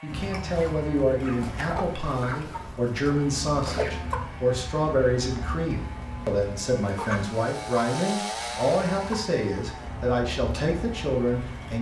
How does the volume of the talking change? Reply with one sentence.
The volume of the talking stays about the same.